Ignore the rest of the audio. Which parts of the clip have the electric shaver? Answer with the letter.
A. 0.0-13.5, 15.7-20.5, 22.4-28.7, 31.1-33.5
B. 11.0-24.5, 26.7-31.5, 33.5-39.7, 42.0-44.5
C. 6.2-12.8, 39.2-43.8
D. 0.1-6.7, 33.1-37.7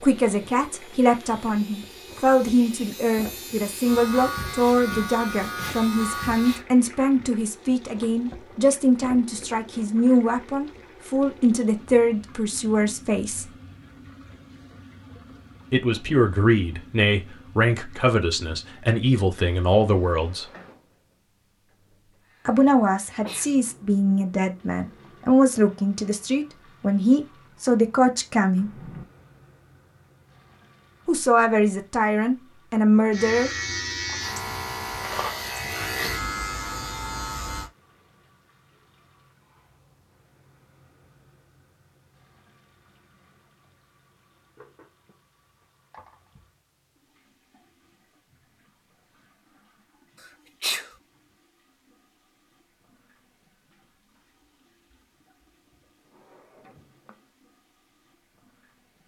D.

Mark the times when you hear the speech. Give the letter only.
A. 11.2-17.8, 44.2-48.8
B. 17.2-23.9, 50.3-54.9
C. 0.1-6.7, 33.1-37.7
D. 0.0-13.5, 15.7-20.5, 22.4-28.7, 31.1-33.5
D.